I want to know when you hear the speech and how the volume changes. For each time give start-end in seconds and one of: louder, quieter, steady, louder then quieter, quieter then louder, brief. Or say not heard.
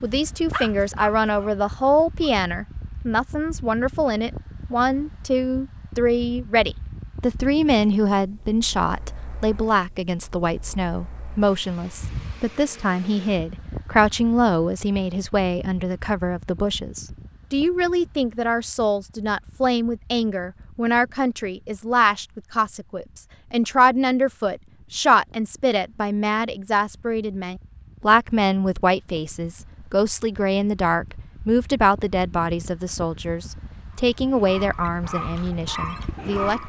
0.0-36.6 steady.